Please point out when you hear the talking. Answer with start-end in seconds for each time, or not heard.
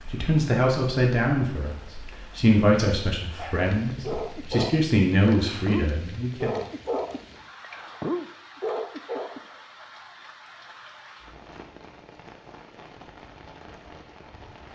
0.1-6.6.